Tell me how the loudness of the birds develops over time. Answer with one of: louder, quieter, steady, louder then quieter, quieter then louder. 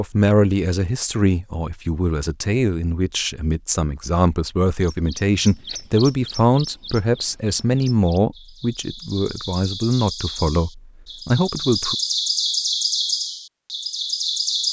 quieter then louder.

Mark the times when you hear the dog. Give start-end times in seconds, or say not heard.
not heard.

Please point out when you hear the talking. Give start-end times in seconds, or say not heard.
0.0-11.9.